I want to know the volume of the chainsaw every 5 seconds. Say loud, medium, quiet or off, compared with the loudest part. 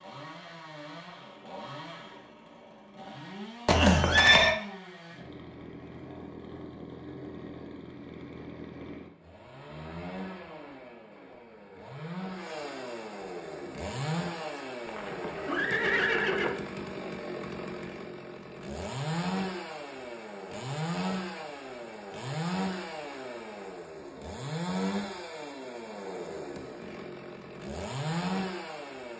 medium, medium, loud, loud, loud, loud.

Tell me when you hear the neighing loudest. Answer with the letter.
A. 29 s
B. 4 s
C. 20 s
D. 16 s
B.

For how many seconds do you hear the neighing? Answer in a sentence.
The neighing can be heard for 3 seconds in total.